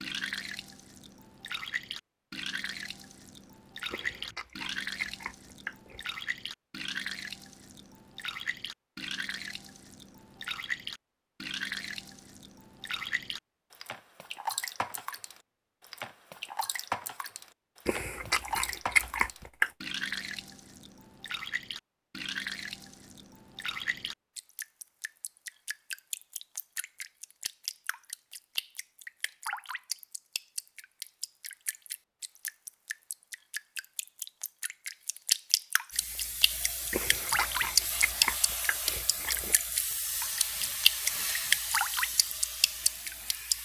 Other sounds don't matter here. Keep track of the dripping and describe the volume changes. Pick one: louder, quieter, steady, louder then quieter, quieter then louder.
louder.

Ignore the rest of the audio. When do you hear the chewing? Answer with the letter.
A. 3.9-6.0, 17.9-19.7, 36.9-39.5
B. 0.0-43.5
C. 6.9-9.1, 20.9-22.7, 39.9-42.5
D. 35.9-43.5
A.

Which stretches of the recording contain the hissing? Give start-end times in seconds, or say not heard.
35.9-43.5.